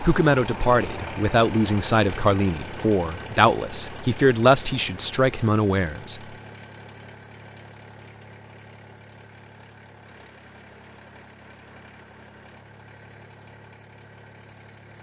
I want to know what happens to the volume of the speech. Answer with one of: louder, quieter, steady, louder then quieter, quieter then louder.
steady.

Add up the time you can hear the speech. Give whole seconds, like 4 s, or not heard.
6 s.